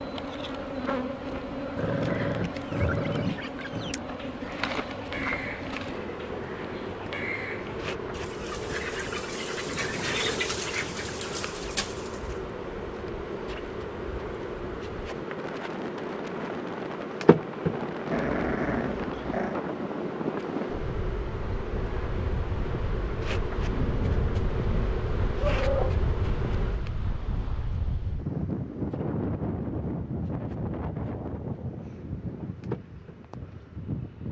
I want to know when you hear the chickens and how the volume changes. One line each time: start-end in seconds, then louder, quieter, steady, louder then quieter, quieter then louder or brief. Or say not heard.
2.7-12.4 louder.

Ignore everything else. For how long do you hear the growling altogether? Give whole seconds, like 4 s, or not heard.
6 s.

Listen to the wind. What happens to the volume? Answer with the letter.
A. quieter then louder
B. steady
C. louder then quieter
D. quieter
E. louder
E.